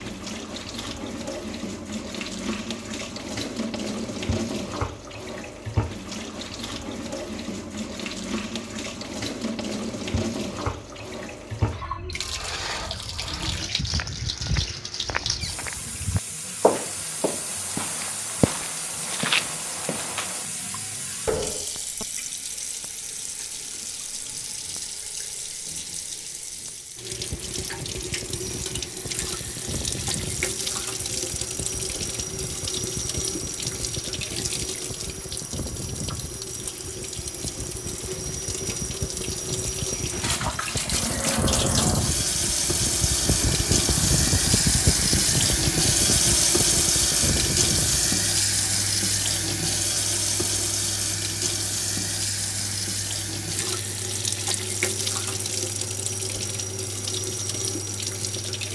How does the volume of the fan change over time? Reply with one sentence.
The volume of the fan goes up, then down.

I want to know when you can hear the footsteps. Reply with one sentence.
You can hear the footsteps from 13.6 to 20.4 s.